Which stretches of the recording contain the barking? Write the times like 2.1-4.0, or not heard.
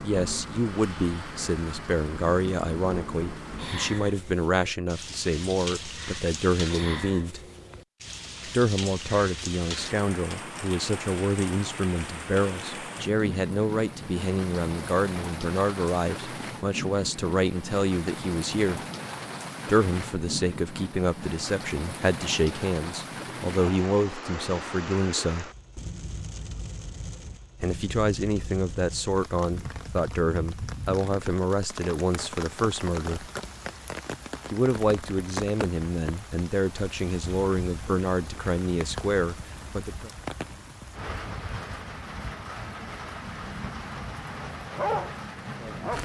44.7-45.9.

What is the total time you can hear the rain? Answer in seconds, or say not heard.
46 s.